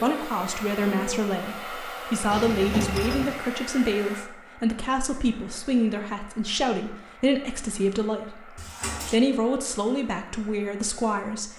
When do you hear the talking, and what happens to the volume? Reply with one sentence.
You can hear the talking from 0.0 to 11.5 s, at a steady volume.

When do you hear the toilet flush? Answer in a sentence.
The toilet flush can be heard from 2.3 to 3.4 s and from 8.6 to 9.2 s.